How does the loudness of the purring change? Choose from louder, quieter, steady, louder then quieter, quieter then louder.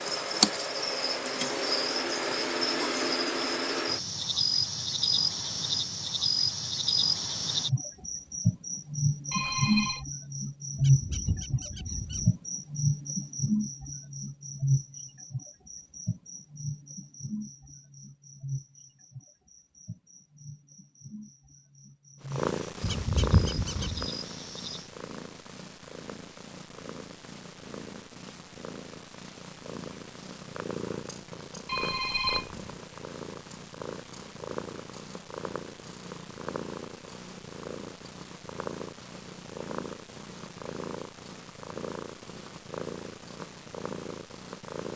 steady.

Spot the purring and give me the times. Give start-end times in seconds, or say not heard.
22.2-44.9.